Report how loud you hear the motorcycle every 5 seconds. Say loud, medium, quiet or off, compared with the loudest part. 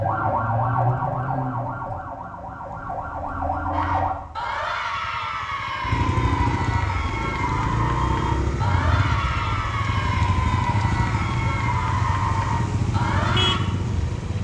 quiet, loud, loud.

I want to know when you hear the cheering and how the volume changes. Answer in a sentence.
You can hear the cheering from 3.7 to 13.6 s, at a steady volume.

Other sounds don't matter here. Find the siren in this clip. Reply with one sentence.
The siren can be heard from 0.0 to 4.1 s.